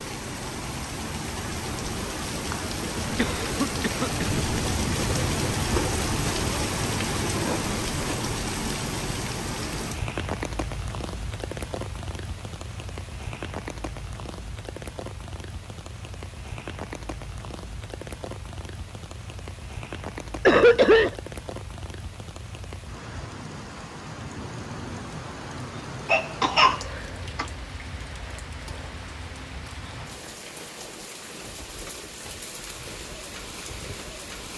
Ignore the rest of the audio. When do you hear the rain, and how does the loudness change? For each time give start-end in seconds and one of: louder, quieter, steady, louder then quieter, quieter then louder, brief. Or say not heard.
0.0-34.5 quieter.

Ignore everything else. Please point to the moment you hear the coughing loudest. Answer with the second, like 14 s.
21 s.